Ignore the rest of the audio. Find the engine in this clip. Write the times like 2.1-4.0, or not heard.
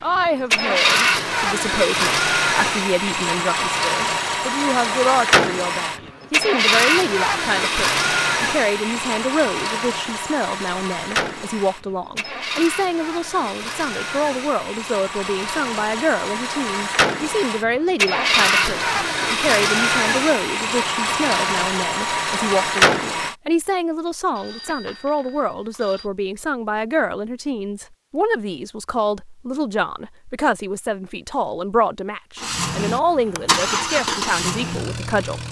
0.1-23.4, 32.4-35.4.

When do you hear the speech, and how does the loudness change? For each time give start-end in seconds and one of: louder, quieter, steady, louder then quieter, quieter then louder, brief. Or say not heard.
0.0-35.4 steady.